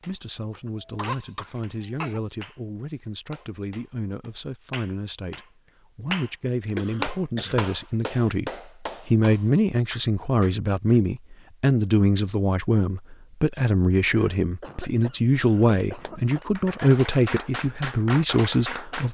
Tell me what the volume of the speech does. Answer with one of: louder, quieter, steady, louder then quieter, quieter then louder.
louder.